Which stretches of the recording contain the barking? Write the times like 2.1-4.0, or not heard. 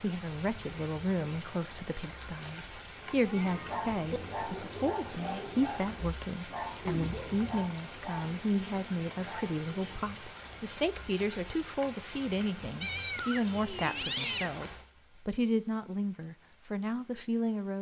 3.3-10.0.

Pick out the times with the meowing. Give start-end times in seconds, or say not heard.
3.0-4.2, 6.8-7.7, 12.8-14.8.